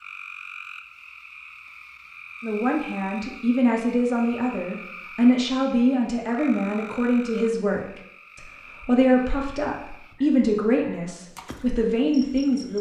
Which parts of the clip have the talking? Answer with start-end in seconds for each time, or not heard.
2.4-12.7.